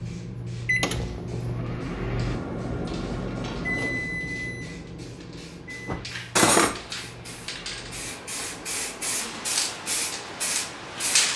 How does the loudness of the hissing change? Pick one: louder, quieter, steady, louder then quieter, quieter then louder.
louder.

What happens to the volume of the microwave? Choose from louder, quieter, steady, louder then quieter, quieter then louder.
quieter.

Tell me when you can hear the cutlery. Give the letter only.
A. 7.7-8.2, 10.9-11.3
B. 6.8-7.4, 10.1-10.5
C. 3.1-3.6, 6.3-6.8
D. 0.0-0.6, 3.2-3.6
C.